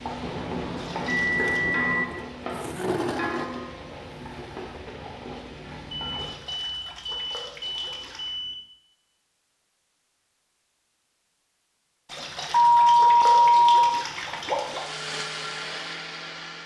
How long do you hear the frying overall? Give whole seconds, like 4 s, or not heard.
6 s.